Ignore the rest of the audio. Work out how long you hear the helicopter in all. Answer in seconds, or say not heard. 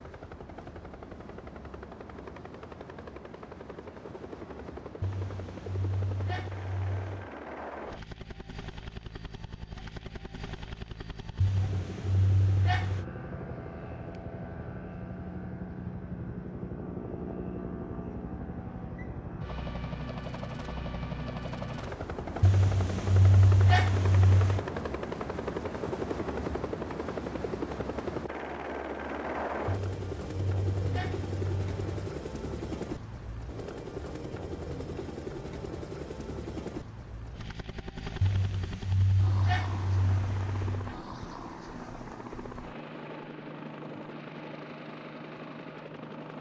46 s.